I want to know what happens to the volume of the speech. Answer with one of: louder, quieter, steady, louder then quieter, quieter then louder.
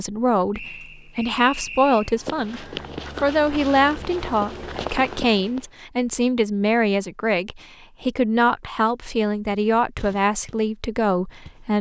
steady.